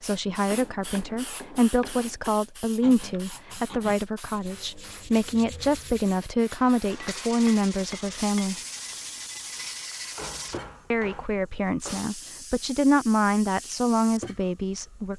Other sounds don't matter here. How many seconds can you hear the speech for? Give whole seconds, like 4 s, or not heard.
13 s.